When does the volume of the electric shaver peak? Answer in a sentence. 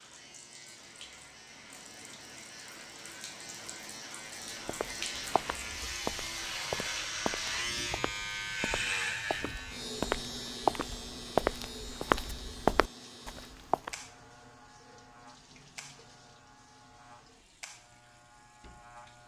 The loudest moment of the electric shaver is at 9 seconds.